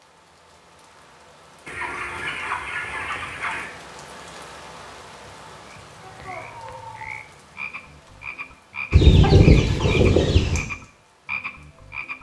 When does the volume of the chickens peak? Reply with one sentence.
The loudest moment of the chickens is at 9 seconds.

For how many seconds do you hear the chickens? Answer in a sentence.
The chickens can be heard for 4 seconds in total.